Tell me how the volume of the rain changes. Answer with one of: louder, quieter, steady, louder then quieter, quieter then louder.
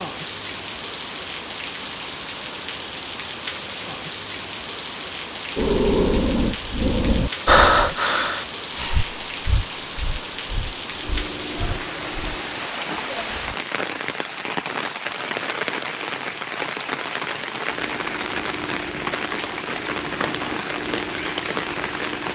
steady.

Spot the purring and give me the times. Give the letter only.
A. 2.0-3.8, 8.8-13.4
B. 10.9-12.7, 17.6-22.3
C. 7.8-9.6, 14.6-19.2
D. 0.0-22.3
B.